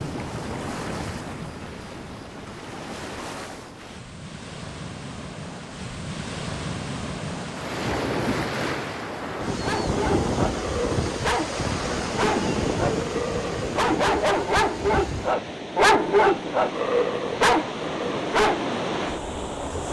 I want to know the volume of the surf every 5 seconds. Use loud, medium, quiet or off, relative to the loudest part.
medium, loud, loud, loud.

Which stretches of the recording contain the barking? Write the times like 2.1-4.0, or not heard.
9.6-18.6.